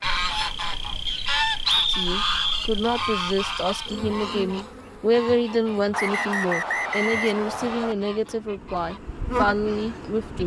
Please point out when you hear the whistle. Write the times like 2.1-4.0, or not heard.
1.1-2.6, 5.9-8.0.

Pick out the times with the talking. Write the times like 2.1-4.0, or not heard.
1.9-10.4.